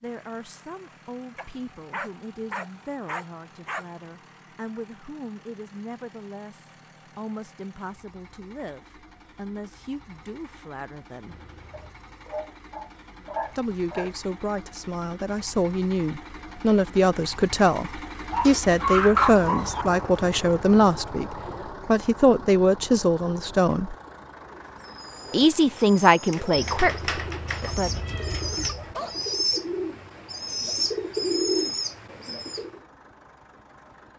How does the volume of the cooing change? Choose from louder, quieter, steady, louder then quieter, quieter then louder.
louder.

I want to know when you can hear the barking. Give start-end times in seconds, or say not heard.
1.4-3.9, 11.7-14.2, 18.3-19.9, 27.6-29.2.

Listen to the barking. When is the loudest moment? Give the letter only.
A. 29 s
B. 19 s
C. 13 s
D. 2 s
B.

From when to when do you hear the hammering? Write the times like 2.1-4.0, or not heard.
not heard.